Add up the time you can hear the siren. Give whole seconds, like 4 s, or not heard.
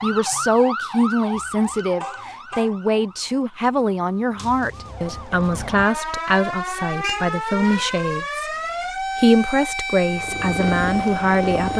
12 s.